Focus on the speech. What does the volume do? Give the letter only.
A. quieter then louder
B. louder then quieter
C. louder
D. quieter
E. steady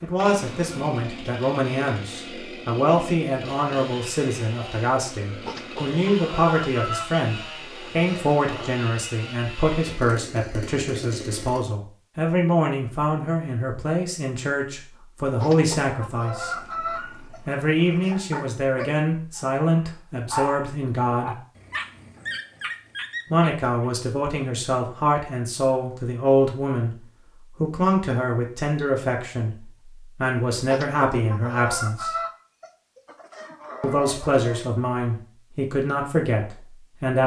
E.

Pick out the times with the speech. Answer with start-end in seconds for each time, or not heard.
0.0-21.4, 23.3-32.1, 33.8-37.2.